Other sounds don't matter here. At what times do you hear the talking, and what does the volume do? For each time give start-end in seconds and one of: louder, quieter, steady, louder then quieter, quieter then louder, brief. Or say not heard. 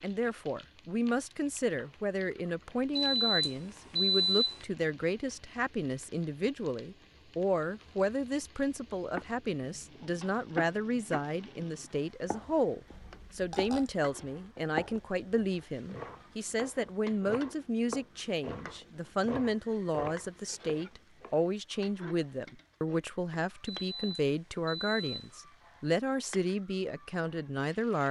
0.0-28.0 steady.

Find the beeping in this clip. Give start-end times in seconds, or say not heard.
3.0-4.6, 23.6-25.4.